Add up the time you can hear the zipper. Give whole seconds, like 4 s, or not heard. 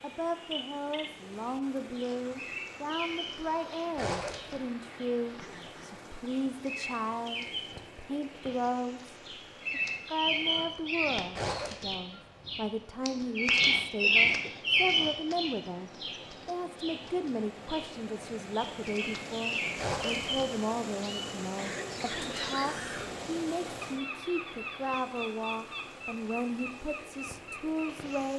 2 s.